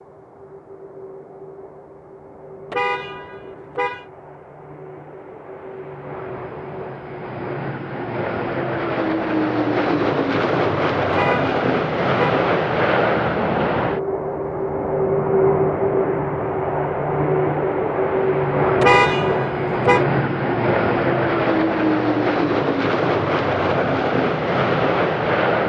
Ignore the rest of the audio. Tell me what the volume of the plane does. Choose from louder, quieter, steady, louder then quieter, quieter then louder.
louder.